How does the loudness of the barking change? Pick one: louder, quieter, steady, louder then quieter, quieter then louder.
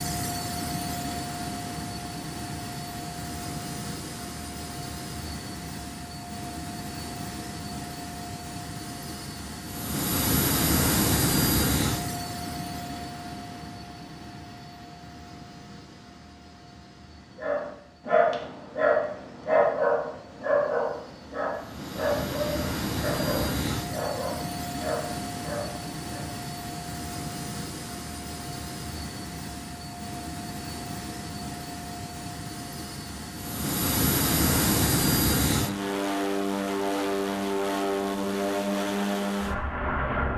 quieter.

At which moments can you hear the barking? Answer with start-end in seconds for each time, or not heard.
17.4-26.3.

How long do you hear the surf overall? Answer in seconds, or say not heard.
not heard.